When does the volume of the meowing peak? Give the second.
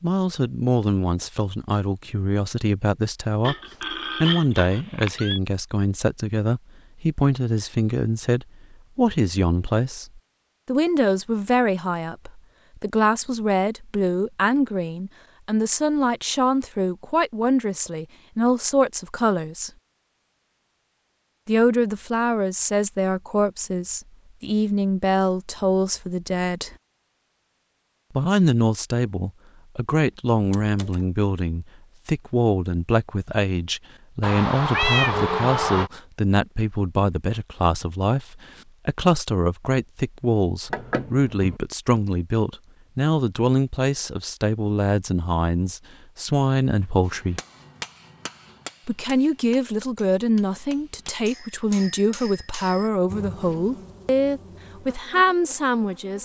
35 s.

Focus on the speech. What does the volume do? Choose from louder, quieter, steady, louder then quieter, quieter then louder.
steady.